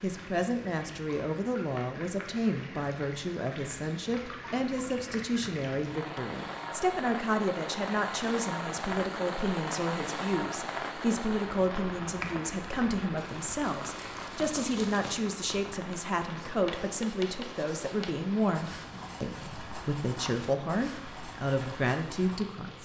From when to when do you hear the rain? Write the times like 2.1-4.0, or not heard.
0.0-22.8.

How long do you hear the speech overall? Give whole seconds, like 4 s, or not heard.
23 s.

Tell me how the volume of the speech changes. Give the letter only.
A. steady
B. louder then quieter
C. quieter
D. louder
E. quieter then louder
A.